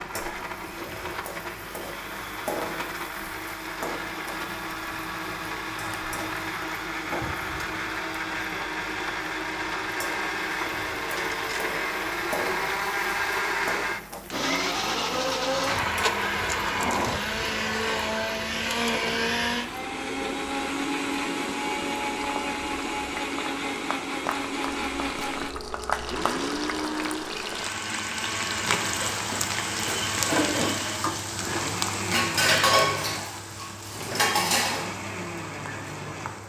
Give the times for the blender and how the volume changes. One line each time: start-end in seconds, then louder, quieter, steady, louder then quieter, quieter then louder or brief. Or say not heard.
0.0-36.4 louder then quieter.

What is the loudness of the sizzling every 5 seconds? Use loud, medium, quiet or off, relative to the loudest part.
medium, medium, medium, medium, medium, loud, loud, medium.